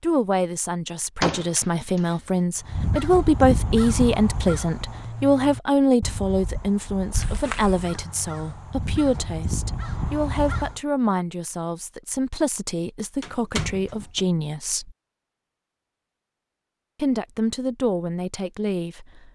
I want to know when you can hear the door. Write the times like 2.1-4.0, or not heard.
1.2-2.0, 7.1-7.8, 13.2-14.2.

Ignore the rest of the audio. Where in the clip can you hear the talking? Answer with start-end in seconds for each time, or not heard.
0.0-14.9, 16.9-19.2.